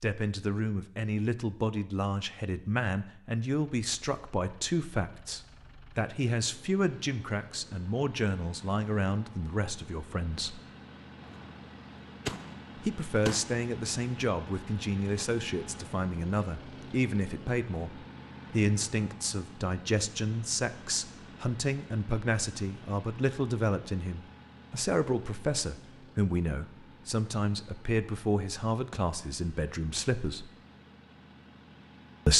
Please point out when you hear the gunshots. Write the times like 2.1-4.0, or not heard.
11.2-13.6.